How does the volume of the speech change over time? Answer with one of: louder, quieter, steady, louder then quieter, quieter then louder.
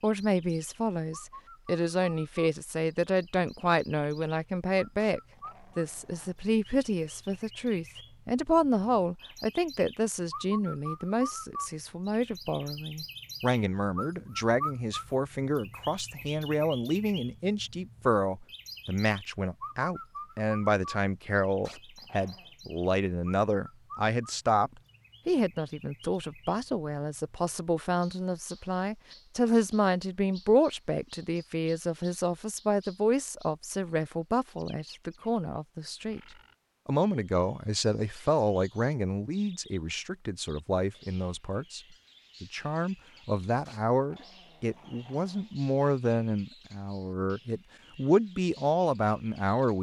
steady.